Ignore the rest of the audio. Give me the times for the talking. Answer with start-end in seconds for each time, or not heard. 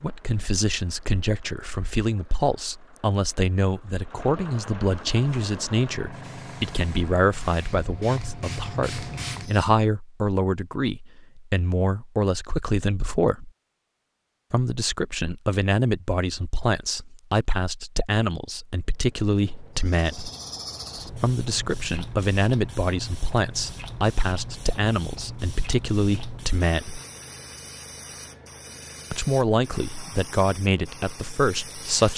0.0-13.5, 14.5-20.3, 21.2-27.0, 29.1-32.1.